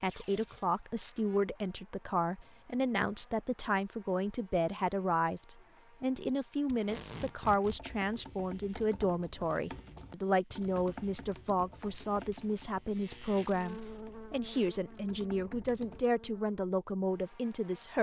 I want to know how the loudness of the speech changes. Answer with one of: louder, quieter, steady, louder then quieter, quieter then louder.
steady.